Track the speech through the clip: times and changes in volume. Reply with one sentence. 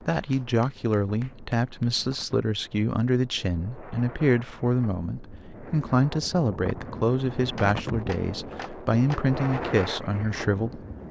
The speech can be heard from 0.1 to 10.8 s, at a steady volume.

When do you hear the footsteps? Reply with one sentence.
You can't hear the footsteps here.